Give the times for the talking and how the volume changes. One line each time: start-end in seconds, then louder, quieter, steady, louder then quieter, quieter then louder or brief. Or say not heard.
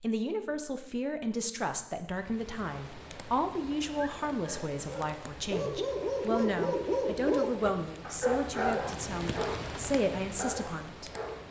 0.0-11.1 steady.